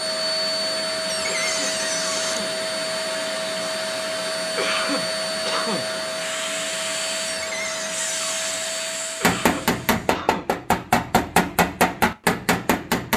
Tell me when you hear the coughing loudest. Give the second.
5 s.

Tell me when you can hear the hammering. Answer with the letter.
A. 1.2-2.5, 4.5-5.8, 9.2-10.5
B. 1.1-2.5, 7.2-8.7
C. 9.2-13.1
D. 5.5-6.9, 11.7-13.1
C.